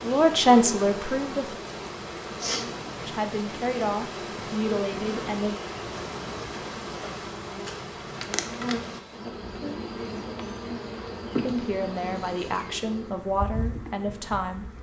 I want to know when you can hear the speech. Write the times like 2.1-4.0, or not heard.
0.0-1.6, 3.0-5.6, 11.3-14.7.